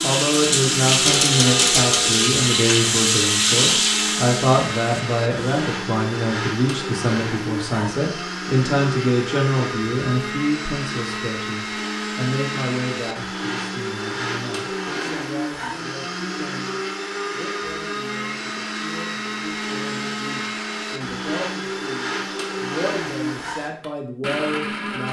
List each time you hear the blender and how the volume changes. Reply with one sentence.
You can hear the blender from 0.0 to 25.0 s, at a steady volume.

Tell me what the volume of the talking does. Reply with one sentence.
The loudness of the talking goes down, then up.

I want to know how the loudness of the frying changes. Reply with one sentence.
The volume of the frying stays about the same.